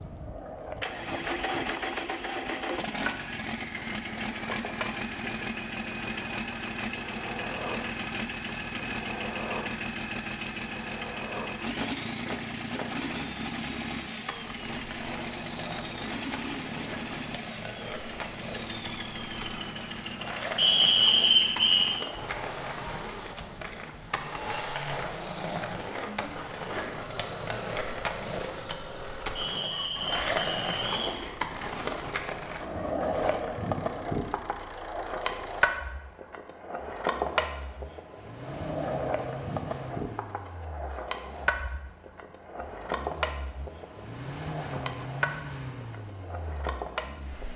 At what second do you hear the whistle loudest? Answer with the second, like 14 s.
21 s.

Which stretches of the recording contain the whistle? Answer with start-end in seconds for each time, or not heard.
20.6-21.9, 29.4-31.1.